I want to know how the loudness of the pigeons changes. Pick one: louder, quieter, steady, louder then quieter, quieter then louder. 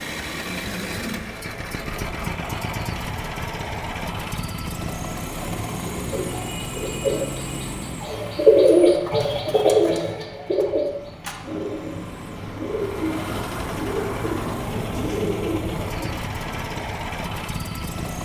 louder then quieter.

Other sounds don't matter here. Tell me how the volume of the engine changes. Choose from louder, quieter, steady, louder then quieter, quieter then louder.
quieter then louder.